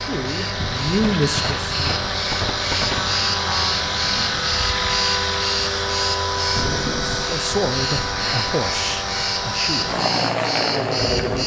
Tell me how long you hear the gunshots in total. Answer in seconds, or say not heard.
2 s.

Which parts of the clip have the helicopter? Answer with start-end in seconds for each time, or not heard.
0.0-11.4.